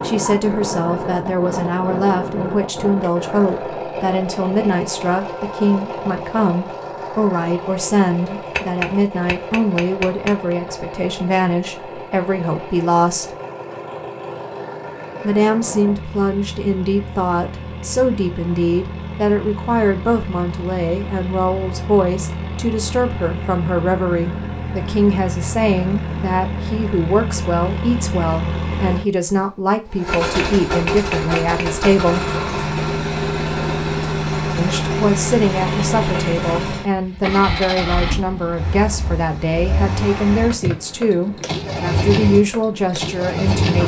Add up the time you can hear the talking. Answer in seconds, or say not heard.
40 s.